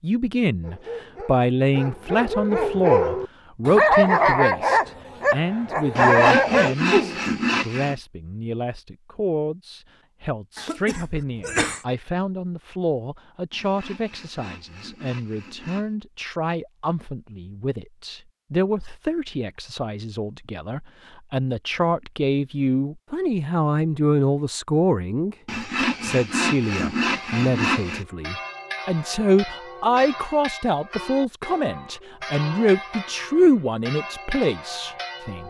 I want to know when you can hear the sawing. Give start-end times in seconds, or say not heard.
6.0-8.0, 13.5-15.9, 25.4-28.1.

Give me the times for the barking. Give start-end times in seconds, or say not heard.
0.6-7.2.